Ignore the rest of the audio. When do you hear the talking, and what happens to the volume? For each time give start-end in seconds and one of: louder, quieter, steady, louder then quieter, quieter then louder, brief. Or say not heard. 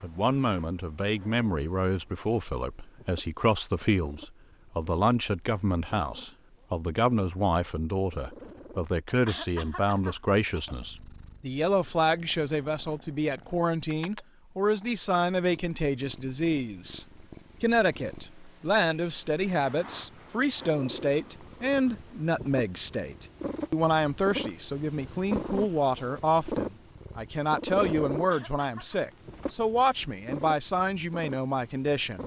0.0-32.2 steady.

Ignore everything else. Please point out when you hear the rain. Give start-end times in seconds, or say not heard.
not heard.